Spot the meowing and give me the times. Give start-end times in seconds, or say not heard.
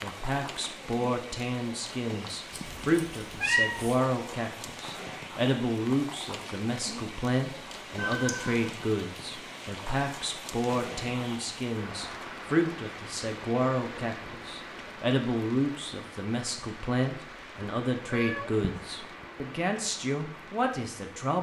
2.5-4.0, 8.0-8.7, 18.1-18.8.